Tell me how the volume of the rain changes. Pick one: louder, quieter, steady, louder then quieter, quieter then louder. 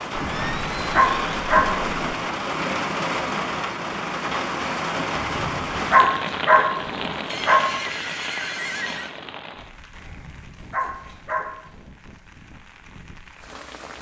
quieter.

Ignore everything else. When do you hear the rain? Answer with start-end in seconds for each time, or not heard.
0.0-13.9.